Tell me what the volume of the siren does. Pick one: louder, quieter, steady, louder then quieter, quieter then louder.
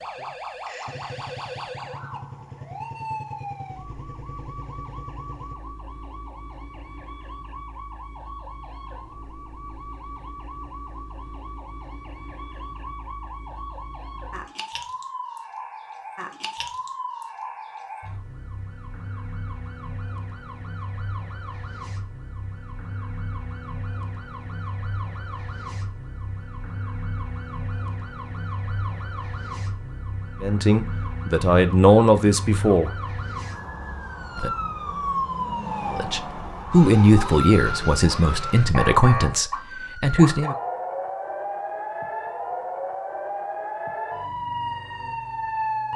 louder.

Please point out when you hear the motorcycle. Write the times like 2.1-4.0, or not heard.
0.0-5.5.